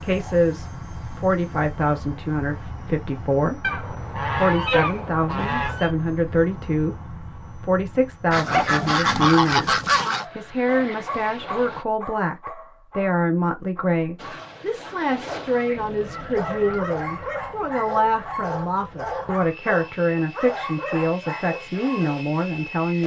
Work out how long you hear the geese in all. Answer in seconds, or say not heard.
6 s.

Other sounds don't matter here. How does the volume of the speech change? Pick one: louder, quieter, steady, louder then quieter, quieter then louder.
steady.